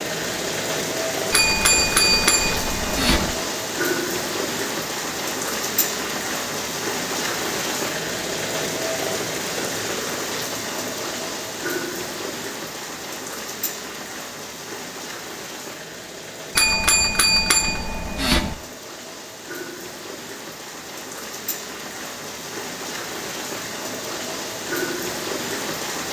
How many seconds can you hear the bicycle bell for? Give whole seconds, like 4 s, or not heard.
4 s.